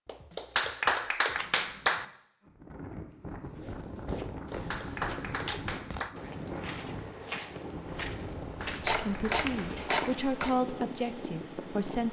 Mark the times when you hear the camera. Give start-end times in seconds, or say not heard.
1.4-1.8, 4.5-5.7, 8.8-10.6.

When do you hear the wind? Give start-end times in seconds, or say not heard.
2.4-12.0.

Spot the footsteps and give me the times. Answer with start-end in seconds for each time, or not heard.
3.5-10.6.